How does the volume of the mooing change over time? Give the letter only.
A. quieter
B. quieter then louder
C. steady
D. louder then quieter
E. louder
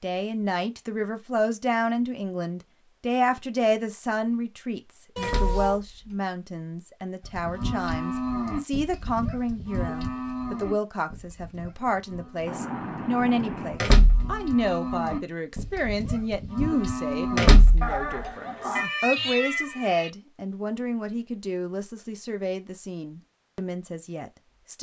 B.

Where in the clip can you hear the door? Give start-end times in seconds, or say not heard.
5.2-6.2, 13.8-14.7, 17.4-18.0.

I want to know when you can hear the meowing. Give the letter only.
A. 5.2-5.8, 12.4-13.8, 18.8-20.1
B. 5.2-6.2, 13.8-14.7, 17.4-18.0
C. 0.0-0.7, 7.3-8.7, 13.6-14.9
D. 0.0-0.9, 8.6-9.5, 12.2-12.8
A.